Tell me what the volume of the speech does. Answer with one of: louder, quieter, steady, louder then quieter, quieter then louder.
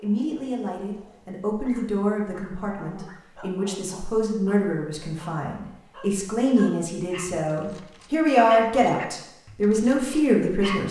louder.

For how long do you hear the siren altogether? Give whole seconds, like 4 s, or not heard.
not heard.